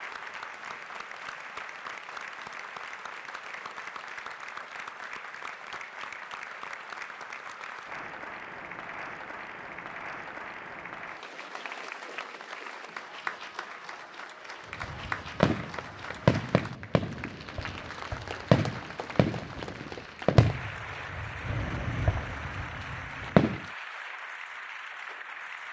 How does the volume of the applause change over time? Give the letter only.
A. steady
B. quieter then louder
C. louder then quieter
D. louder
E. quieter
A.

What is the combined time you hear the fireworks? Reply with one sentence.
You can hear the fireworks for 9 seconds altogether.